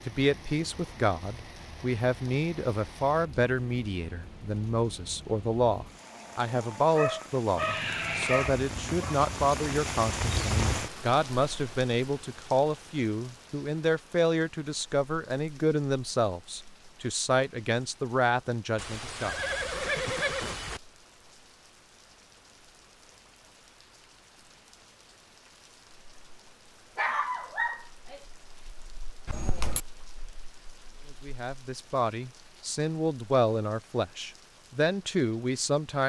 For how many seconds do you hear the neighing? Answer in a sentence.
You can hear the neighing for 4 seconds altogether.